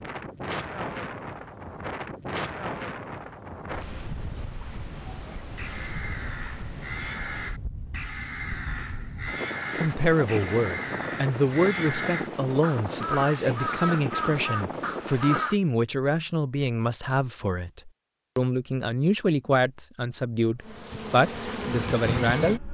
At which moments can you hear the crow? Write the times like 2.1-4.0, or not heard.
4.9-15.6.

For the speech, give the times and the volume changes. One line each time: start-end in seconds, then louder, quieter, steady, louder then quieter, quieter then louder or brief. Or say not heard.
9.7-22.6 steady.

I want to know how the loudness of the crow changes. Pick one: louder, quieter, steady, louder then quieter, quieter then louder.
louder.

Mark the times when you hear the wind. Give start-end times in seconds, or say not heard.
0.0-15.5.